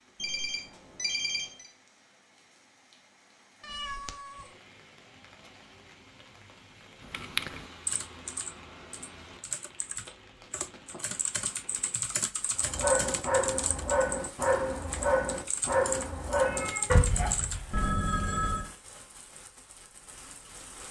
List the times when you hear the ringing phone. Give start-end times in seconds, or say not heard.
0.1-1.7, 17.7-18.7.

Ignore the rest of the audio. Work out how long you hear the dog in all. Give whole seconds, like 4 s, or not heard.
5 s.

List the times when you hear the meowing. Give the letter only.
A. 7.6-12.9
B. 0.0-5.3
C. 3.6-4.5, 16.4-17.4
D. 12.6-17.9
C.